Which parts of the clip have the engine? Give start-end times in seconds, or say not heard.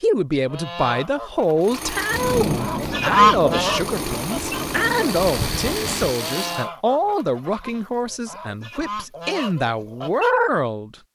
1.6-6.7.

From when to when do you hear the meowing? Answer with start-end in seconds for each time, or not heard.
not heard.